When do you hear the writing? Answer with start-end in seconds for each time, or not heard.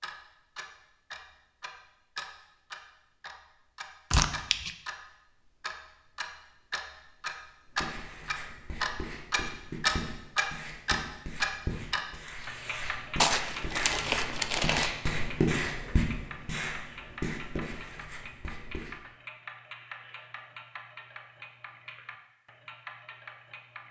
7.7-18.9.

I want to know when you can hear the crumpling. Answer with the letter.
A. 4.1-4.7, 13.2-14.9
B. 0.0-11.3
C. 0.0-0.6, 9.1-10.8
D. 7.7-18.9
A.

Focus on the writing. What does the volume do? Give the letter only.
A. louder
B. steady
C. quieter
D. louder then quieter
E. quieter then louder
D.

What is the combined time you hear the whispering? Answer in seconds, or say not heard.
not heard.